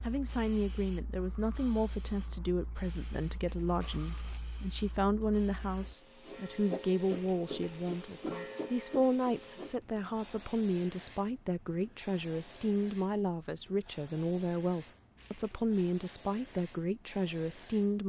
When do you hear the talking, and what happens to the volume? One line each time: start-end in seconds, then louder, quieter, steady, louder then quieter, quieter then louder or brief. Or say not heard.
0.0-18.0 steady.